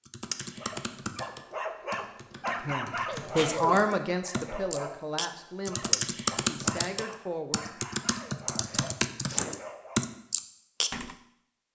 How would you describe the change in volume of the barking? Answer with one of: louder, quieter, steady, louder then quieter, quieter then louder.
quieter.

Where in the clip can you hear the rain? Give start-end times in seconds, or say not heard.
not heard.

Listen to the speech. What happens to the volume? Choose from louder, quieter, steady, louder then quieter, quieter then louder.
quieter.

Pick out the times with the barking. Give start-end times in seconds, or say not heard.
0.6-10.1.